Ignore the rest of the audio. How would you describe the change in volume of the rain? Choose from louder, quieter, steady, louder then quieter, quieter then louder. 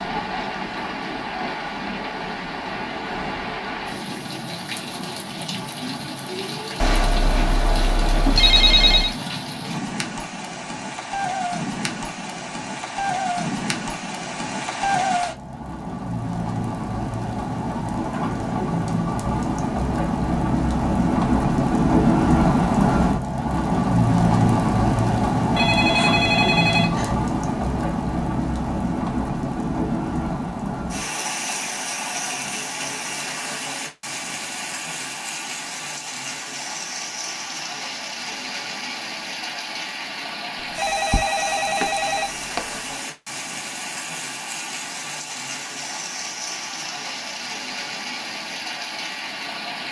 louder then quieter.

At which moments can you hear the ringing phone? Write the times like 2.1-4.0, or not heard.
6.8-9.2, 25.6-27.1, 40.8-42.6.